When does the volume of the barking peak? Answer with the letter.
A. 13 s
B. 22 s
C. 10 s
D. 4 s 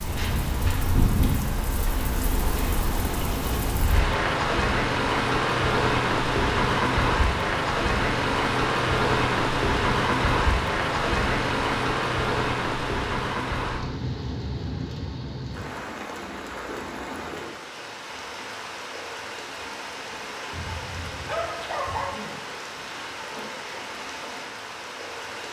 B.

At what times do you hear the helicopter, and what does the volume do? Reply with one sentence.
The helicopter can't be heard in this clip.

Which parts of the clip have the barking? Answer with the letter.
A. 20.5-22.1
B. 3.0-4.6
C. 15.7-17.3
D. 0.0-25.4
A.